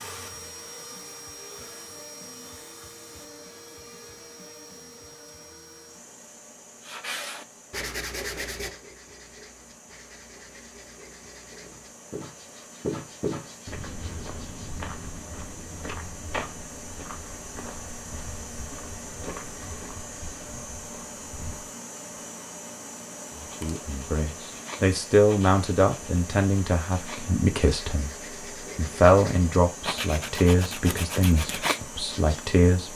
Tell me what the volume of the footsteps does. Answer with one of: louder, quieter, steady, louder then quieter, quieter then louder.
quieter.